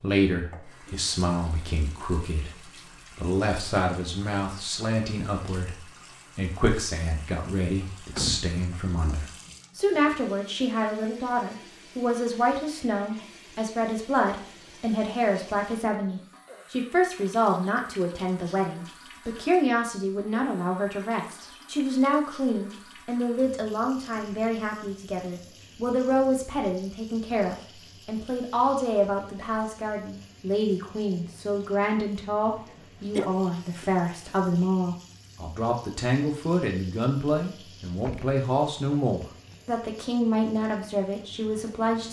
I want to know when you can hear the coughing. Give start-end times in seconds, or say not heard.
32.6-33.3.